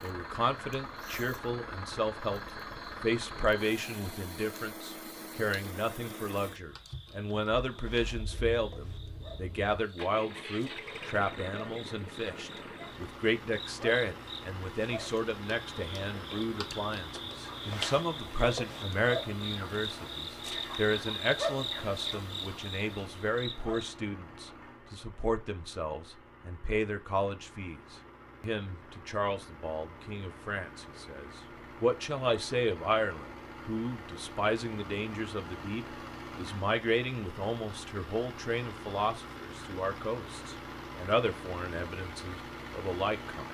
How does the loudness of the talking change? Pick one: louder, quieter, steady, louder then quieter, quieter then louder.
steady.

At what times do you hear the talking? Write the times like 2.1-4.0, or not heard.
0.0-43.4.